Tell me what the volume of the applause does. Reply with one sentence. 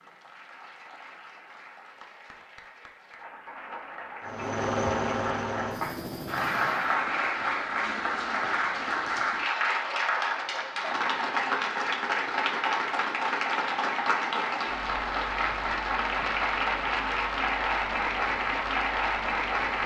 The loudness of the applause goes up.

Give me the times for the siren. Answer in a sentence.
You can't hear the siren here.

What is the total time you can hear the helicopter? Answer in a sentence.
The helicopter can be heard for 3 seconds in total.